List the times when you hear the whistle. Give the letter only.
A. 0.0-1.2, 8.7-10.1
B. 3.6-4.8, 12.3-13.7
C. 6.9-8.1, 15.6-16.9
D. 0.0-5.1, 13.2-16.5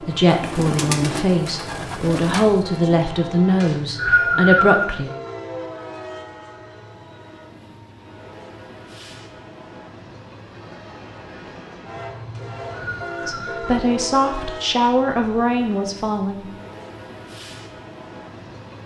B.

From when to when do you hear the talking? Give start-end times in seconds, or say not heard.
0.0-5.1, 13.2-16.5.